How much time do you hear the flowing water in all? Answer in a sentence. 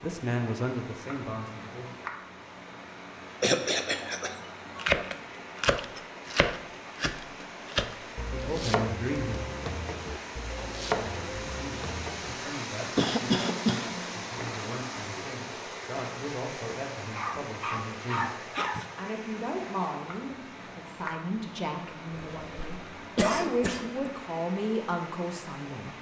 The flowing water can be heard for 26 seconds in total.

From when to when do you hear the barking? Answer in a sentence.
The barking can be heard from 17.1 to 18.9 s.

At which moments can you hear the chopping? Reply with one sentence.
You can hear the chopping from 4.8 to 12.3 s.